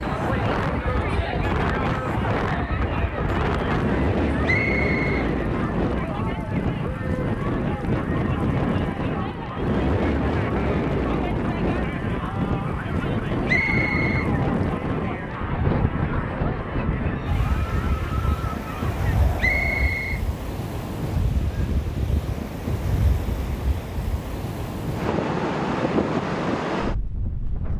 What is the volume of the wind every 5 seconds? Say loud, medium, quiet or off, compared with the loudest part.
loud, loud, loud, loud, medium, loud.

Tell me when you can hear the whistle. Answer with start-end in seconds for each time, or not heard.
4.5-5.3, 13.4-14.3, 19.4-20.2.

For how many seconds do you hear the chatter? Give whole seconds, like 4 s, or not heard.
20 s.